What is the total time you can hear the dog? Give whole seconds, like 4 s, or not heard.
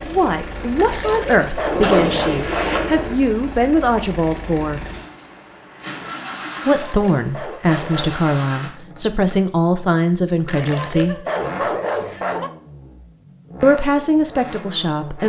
6 s.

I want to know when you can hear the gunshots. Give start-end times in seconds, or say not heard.
1.6-3.1.